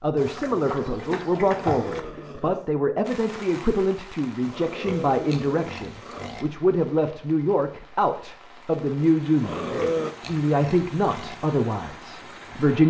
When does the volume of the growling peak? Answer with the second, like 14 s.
10 s.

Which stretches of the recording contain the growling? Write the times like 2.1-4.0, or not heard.
1.6-2.6, 4.5-6.3, 9.4-10.2.